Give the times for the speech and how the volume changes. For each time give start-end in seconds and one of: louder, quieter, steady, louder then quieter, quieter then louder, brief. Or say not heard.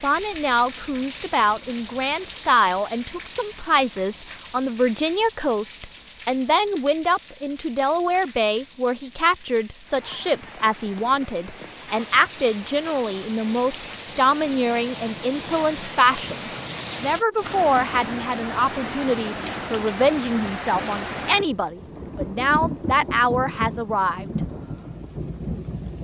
0.0-24.3 steady.